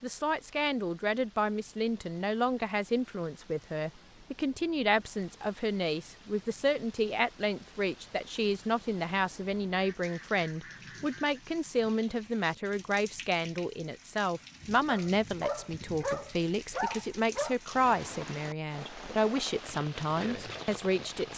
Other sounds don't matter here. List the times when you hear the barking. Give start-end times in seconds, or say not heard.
14.8-17.6.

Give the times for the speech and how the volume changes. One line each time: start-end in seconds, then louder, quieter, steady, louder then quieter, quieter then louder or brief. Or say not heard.
0.0-21.3 steady.